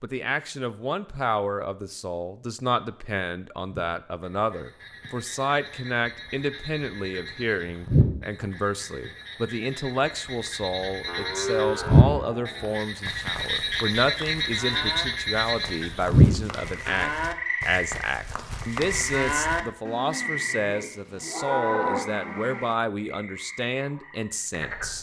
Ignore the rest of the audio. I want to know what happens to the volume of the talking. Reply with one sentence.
The volume of the talking stays about the same.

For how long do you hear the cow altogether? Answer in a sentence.
The cow can be heard for 12 seconds in total.